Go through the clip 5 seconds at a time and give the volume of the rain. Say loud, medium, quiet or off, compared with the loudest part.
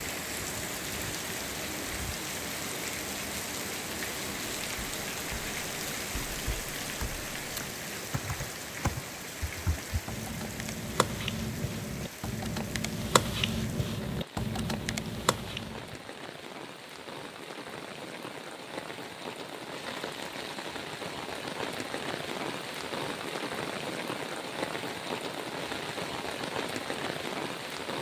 loud, loud, medium, medium, loud, loud.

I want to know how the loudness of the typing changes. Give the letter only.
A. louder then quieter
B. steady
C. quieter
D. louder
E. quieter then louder
D.